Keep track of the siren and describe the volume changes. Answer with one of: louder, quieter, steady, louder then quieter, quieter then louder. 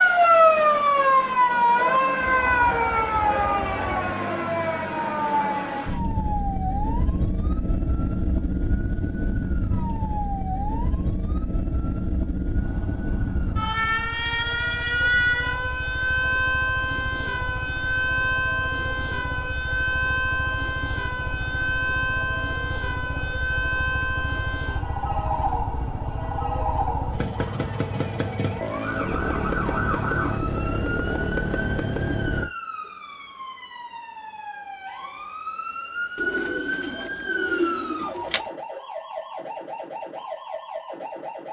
quieter.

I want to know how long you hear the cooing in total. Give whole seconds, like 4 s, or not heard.
2 s.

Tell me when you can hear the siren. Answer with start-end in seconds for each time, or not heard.
0.0-41.4.